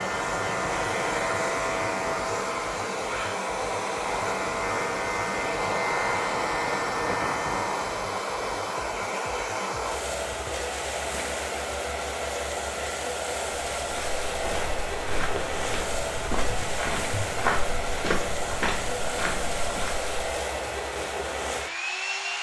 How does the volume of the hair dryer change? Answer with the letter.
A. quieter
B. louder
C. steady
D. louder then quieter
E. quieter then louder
C.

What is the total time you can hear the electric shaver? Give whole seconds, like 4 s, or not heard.
8 s.